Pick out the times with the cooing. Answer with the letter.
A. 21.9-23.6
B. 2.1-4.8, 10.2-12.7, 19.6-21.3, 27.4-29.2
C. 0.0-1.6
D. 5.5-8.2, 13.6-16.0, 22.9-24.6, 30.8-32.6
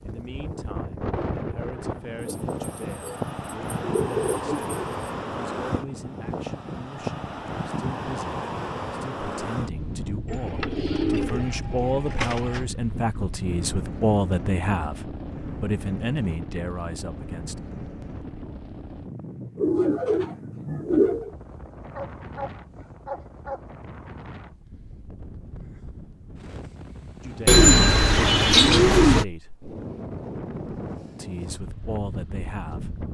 B.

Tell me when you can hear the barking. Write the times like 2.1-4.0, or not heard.
21.9-23.6.